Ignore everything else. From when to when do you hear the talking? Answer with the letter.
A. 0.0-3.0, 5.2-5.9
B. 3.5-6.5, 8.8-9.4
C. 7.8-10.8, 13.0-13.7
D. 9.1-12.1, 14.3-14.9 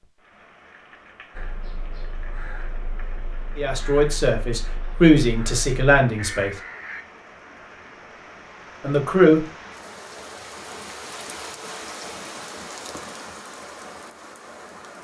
B.